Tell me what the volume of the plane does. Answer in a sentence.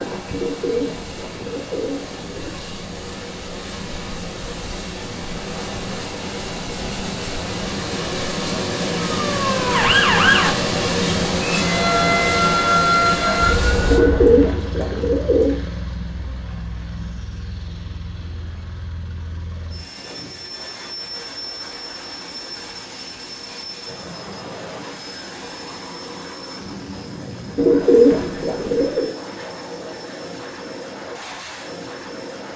The loudness of the plane goes up, then down.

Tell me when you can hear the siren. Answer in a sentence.
The siren can be heard from 9.1 to 14.5 s.